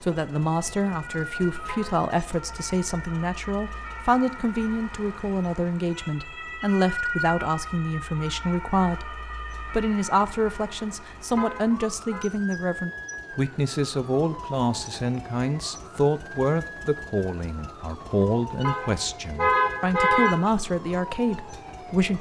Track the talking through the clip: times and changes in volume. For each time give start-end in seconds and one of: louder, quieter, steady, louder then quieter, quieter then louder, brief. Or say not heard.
0.0-22.1 steady.